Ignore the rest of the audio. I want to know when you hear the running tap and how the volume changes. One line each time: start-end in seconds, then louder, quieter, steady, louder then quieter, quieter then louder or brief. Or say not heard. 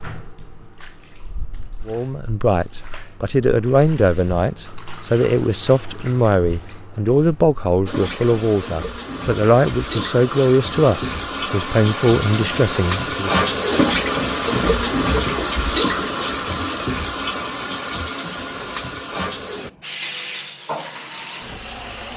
0.0-22.1 louder then quieter.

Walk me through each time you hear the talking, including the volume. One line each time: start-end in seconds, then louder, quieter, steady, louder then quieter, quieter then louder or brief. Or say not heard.
1.9-13.4 steady.